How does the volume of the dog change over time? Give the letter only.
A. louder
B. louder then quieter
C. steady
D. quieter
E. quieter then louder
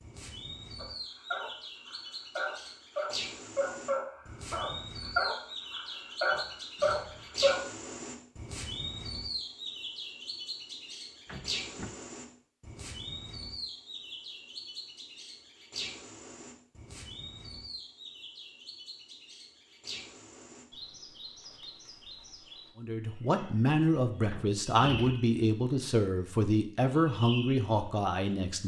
A.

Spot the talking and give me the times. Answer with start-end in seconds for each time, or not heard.
22.8-28.6.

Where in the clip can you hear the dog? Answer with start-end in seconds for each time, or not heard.
0.8-7.6.